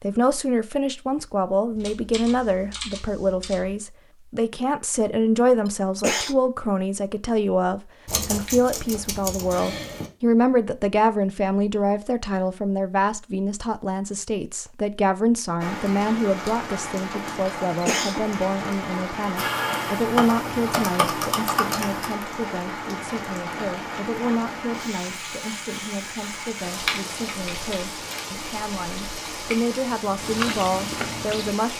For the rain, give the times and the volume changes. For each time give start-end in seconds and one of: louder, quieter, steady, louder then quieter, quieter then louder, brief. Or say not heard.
15.6-31.7 steady.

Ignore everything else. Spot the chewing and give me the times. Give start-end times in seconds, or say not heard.
30.0-31.6.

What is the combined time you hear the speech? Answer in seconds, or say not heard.
32 s.